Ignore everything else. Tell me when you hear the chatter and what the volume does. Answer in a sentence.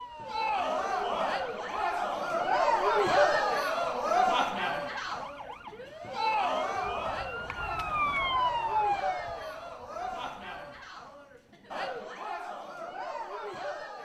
You can hear the chatter from 0.1 to 14.0 s, getting quieter.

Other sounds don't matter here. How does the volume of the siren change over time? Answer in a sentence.
The volume of the siren goes up.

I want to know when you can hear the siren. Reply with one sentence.
You can hear the siren from 0.0 to 10.9 s.